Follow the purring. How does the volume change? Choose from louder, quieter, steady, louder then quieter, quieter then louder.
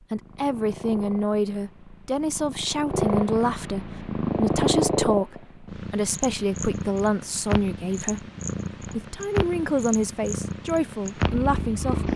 louder then quieter.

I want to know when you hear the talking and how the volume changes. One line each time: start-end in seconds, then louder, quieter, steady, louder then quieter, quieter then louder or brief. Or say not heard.
0.1-12.1 steady.